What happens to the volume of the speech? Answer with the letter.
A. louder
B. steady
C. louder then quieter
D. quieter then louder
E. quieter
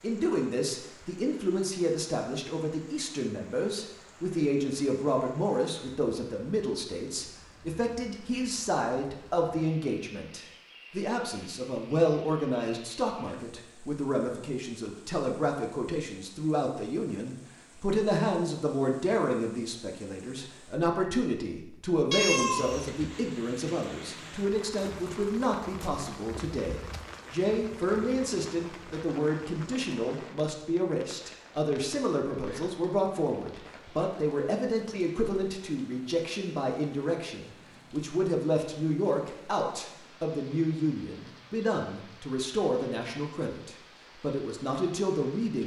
B.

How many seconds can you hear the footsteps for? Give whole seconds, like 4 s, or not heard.
not heard.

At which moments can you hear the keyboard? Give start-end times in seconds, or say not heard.
not heard.